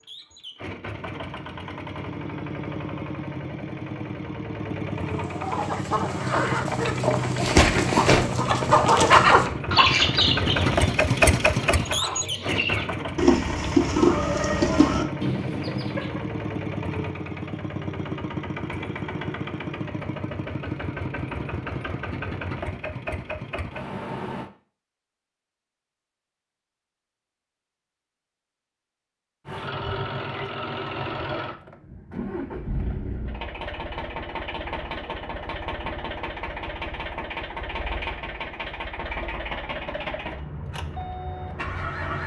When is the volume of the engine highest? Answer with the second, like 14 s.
11 s.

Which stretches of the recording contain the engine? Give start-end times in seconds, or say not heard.
0.0-24.5, 29.4-42.2.